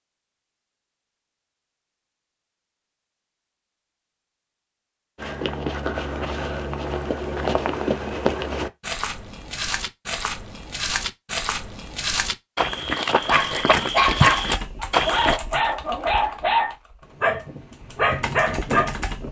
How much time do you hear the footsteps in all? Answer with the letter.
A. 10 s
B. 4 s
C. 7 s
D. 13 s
A.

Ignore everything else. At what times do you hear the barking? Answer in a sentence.
You can hear the barking from 13.1 to 19.2 s.